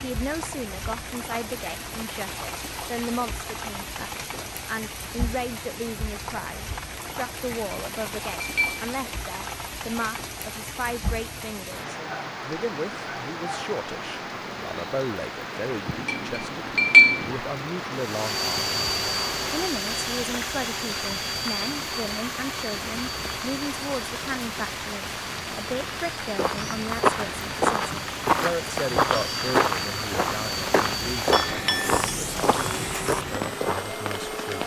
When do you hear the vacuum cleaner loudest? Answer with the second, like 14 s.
19 s.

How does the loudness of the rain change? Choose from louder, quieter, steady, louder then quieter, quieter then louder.
steady.